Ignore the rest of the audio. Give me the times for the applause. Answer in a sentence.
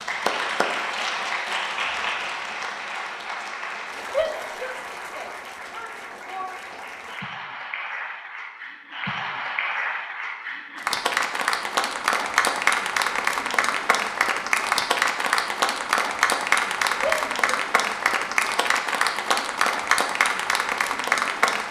The applause can be heard from 0.0 to 21.6 s.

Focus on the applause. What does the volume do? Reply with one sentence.
The loudness of the applause goes down, then up.